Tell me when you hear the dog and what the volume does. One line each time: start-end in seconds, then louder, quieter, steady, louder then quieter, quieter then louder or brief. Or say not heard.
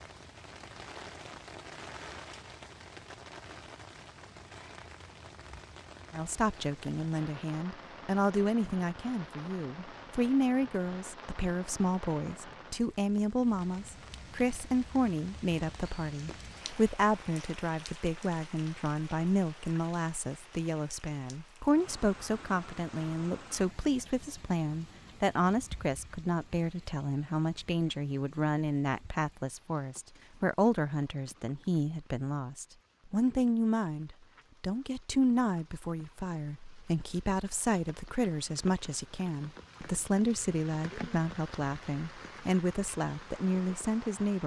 not heard.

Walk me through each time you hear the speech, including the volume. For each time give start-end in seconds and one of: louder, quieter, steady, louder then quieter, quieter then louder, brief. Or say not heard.
6.1-44.4 steady.